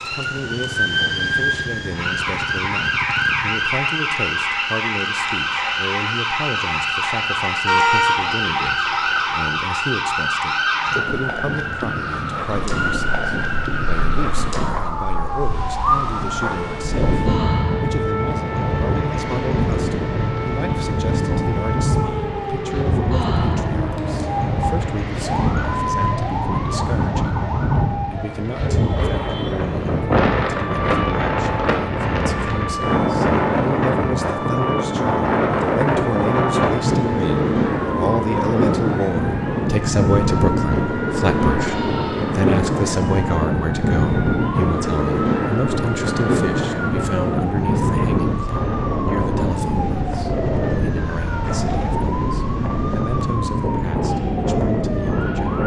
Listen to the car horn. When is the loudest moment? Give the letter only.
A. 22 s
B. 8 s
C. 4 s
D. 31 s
B.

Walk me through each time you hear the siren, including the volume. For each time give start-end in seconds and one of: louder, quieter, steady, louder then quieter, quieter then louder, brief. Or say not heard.
0.0-55.6 quieter.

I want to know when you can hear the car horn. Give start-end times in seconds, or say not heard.
7.7-9.5.